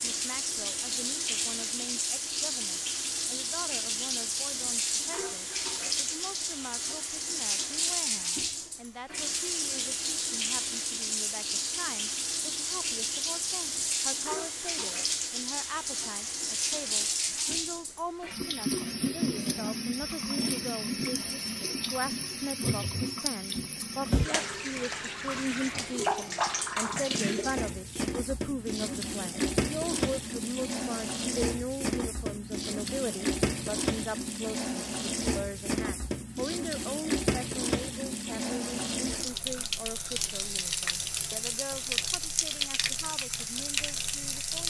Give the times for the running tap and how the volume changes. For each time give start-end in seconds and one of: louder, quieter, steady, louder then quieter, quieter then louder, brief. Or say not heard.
0.0-44.6 steady.